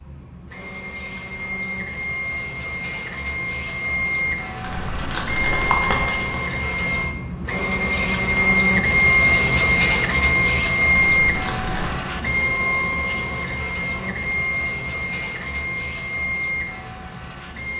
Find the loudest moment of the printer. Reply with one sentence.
The volume of the printer peaks at 9 seconds.